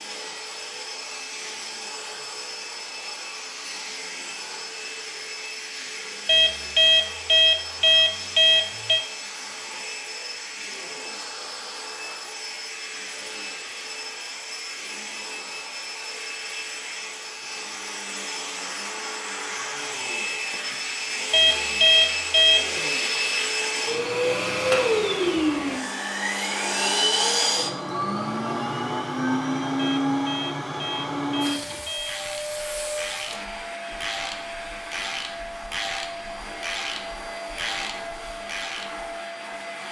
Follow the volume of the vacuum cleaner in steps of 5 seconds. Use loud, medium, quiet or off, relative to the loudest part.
medium, medium, medium, medium, loud, loud, medium, medium.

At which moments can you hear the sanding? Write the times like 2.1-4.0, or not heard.
not heard.